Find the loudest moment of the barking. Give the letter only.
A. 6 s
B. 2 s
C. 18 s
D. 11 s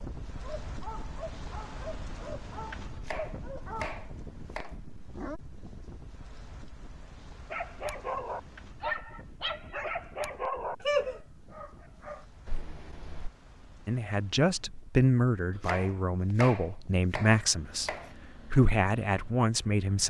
D.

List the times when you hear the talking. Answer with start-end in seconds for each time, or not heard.
13.8-20.0.